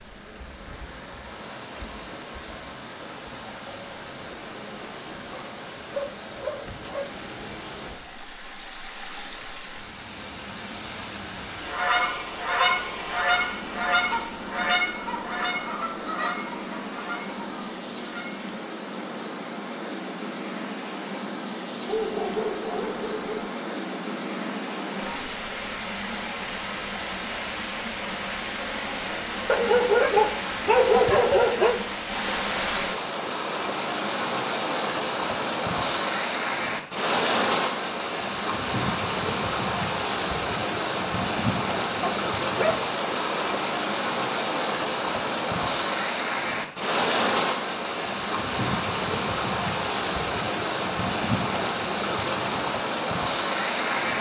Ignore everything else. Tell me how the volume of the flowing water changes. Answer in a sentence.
The loudness of the flowing water goes up.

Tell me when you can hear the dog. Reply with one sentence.
The dog can be heard from 5.2 to 7.0 s, from 21.9 to 23.5 s, from 29.4 to 31.8 s and from 42.0 to 42.8 s.